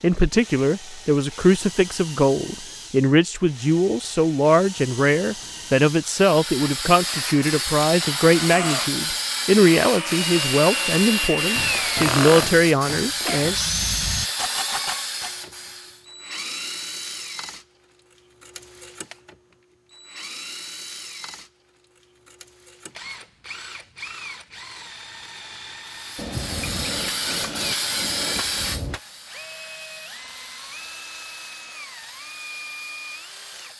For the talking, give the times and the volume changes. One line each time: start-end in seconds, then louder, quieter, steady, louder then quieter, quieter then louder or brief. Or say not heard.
0.0-13.6 steady.